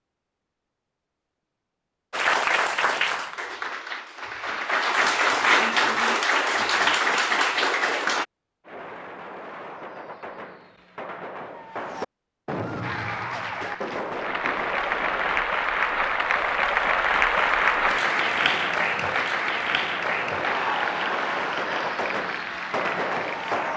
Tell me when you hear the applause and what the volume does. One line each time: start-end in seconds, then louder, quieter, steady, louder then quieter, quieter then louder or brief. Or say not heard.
2.1-8.2 quieter then louder
12.8-23.7 louder then quieter.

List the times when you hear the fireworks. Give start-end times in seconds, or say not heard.
8.7-15.5, 19.9-23.7.